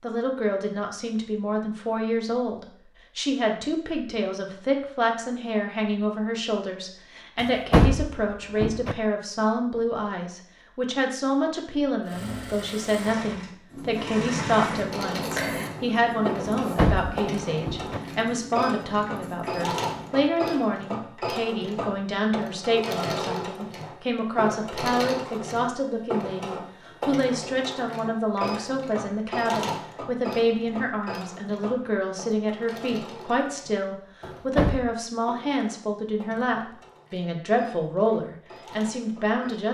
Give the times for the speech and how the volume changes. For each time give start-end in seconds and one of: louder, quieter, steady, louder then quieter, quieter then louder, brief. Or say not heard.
0.0-39.6 steady.